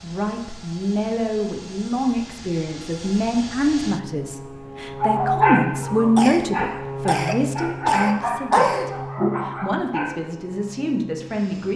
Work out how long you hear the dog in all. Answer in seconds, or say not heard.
5 s.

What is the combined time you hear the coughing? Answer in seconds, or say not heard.
3 s.